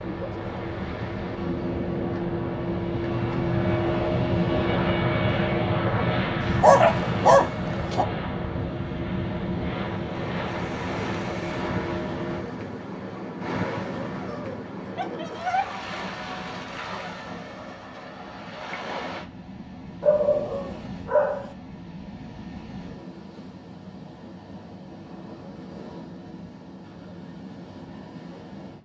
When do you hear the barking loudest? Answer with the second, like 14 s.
7 s.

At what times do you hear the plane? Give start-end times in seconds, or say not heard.
0.0-12.4.